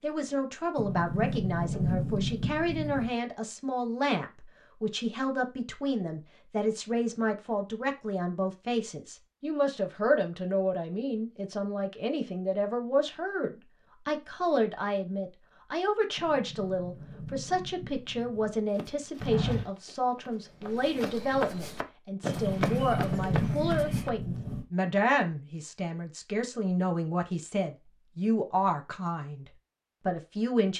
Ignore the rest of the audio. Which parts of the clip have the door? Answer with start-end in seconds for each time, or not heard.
0.8-3.1, 16.1-18.6, 22.2-24.6.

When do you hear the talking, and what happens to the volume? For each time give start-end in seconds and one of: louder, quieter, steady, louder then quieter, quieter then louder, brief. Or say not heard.
0.0-30.7 steady.